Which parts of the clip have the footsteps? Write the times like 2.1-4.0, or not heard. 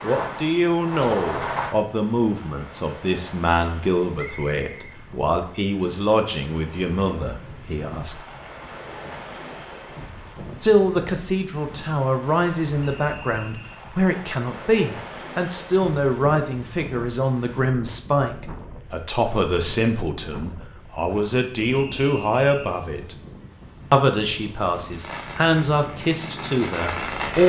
not heard.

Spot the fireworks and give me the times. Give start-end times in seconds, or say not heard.
0.0-1.8, 24.9-27.4.